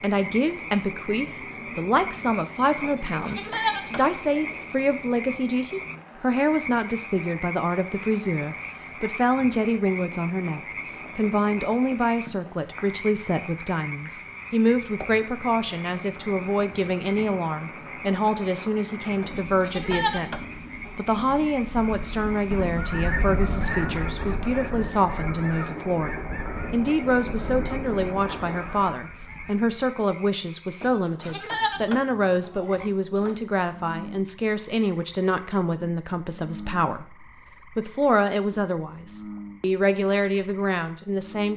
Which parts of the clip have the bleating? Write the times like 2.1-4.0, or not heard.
2.8-4.5, 19.2-20.9, 30.8-33.4.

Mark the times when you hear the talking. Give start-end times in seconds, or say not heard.
0.0-41.5.